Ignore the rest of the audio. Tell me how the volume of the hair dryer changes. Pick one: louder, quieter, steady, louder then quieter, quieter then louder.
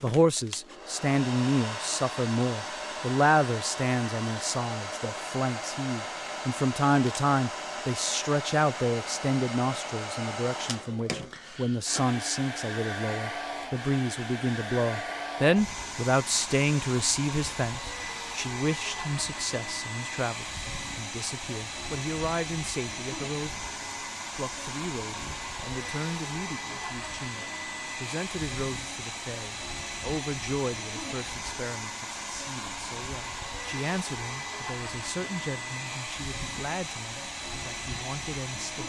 steady.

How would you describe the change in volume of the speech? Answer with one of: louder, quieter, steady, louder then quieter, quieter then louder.
quieter.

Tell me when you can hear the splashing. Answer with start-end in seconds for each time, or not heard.
not heard.